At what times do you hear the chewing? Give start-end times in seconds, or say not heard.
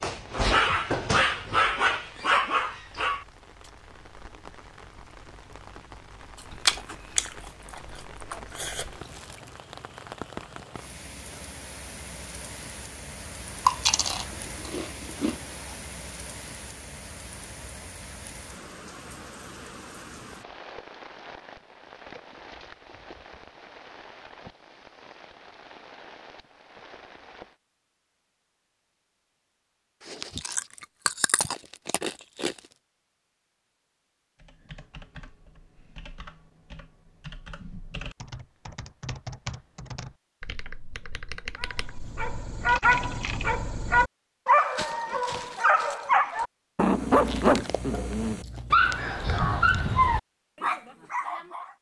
6.7-8.8, 13.7-15.6, 30.0-32.6, 47.1-49.9.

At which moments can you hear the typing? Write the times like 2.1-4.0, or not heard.
34.4-43.5.